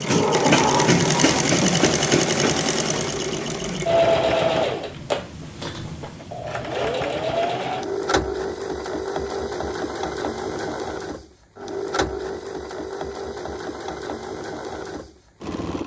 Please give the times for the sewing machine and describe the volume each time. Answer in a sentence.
The sewing machine can be heard from 0.0 to 15.8 s, getting quieter.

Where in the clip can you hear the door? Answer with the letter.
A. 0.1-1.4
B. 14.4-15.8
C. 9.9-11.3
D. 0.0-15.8
A.